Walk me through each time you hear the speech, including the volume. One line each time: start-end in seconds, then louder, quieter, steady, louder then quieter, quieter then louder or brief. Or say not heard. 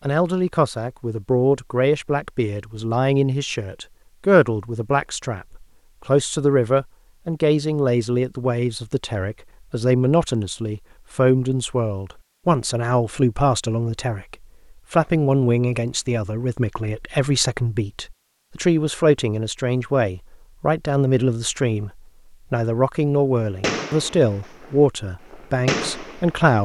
0.0-26.6 steady.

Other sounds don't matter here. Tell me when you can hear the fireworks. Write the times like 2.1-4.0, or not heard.
23.6-26.6.